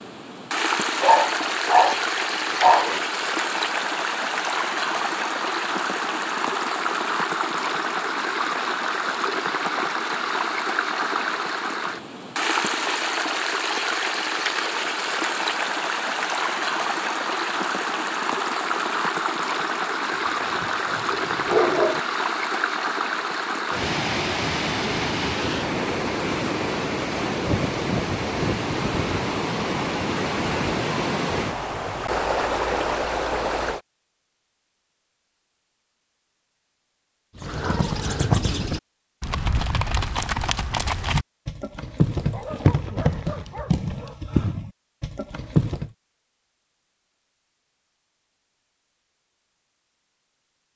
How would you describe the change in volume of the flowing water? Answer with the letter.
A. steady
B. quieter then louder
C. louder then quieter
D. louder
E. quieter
A.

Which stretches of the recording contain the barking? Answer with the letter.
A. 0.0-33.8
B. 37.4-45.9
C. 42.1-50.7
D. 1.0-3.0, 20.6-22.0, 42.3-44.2
D.